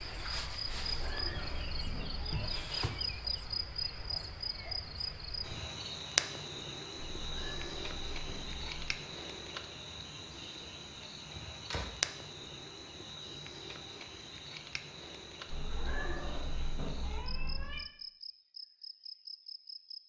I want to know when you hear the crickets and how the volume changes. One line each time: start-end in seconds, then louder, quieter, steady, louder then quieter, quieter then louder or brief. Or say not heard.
0.0-20.0 quieter.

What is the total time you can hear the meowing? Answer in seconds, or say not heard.
6 s.